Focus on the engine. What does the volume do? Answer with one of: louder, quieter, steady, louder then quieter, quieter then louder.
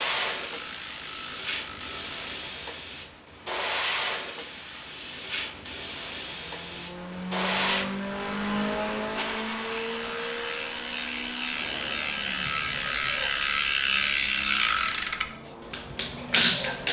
quieter.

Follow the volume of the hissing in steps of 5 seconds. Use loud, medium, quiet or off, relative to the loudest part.
loud, loud, medium, medium.